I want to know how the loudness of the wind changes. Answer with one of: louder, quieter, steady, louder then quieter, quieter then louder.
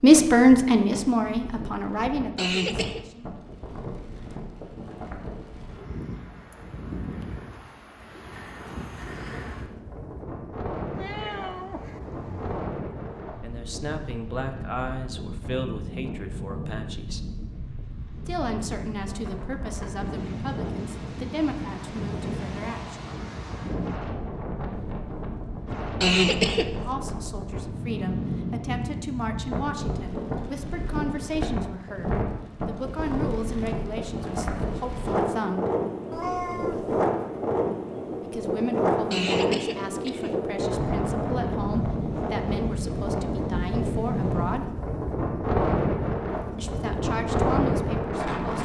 louder.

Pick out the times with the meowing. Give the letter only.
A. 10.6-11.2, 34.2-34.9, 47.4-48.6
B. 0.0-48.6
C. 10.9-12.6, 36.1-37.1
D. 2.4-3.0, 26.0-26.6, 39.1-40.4
C.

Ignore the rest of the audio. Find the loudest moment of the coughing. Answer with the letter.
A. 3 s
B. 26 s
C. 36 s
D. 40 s
B.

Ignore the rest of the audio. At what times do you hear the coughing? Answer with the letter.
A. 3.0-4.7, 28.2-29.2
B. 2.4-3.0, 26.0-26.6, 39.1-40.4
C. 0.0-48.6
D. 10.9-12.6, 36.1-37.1
B.